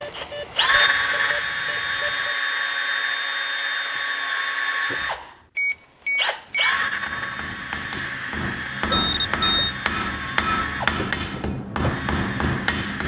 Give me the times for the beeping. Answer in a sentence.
You can hear the beeping from 0.0 to 2.4 s, from 5.5 to 6.8 s and from 8.8 to 9.8 s.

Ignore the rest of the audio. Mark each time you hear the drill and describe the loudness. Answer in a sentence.
You can hear the drill from 0.1 to 13.0 s, getting quieter.